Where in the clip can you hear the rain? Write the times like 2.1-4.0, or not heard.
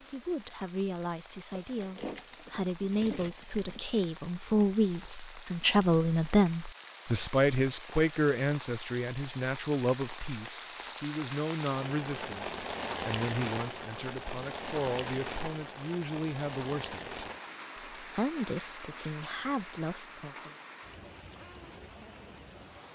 0.0-22.9.